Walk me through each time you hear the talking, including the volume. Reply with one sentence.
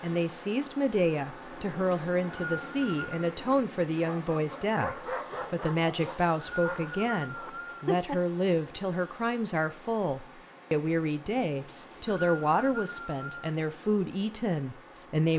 You can hear the talking from 0.0 to 15.3 s, at a steady volume.